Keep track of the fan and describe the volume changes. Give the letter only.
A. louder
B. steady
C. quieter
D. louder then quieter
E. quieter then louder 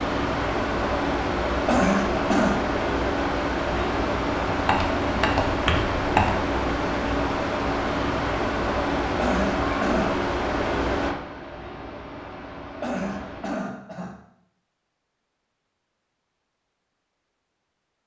C.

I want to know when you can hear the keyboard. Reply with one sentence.
The keyboard can be heard from 4.5 to 6.4 s.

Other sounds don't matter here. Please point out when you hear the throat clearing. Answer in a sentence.
You can hear the throat clearing from 1.6 to 2.6 s, from 9.2 to 10.2 s and from 12.8 to 14.2 s.